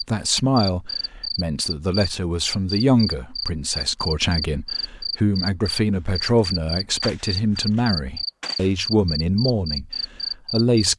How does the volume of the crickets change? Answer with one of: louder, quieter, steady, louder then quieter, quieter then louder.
steady.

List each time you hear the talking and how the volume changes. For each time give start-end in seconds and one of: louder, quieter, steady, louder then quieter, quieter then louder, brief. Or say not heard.
0.0-10.9 steady.